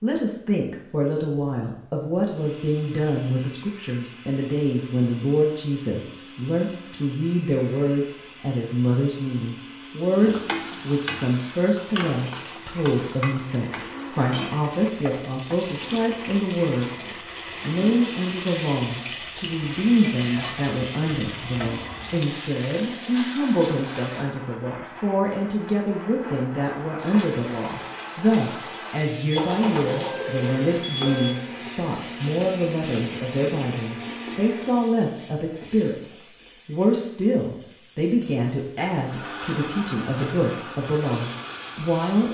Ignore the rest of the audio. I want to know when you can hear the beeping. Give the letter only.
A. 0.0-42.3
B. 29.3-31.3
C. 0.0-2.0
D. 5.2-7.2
B.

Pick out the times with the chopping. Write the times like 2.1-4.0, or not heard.
not heard.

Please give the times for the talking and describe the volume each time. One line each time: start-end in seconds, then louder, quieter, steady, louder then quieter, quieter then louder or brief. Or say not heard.
0.0-42.3 steady.